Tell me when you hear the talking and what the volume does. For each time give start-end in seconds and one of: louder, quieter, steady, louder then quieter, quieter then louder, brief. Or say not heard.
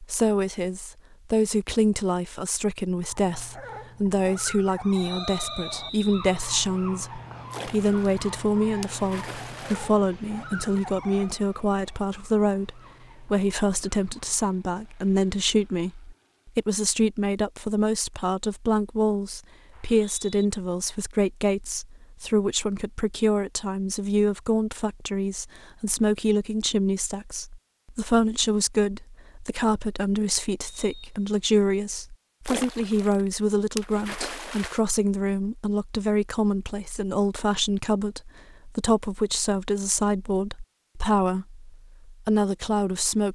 0.0-43.2 steady.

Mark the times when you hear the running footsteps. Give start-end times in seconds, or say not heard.
not heard.